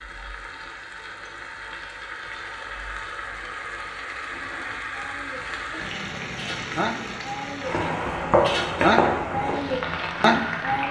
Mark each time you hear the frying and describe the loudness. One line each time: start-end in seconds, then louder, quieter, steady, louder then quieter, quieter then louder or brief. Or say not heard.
0.0-10.8 louder.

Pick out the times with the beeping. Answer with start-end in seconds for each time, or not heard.
not heard.